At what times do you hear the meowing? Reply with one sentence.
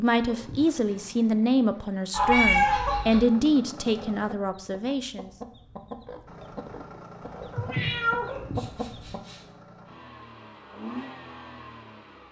You can hear the meowing from 2.3 to 3.2 s and from 7.5 to 9.4 s.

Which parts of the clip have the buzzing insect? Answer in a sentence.
You can't hear the buzzing insect here.